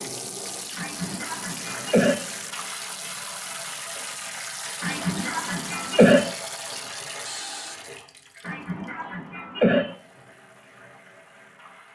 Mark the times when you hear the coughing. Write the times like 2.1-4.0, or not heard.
0.8-2.2, 4.8-6.3, 8.4-9.9.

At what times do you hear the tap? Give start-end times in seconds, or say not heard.
0.0-11.9.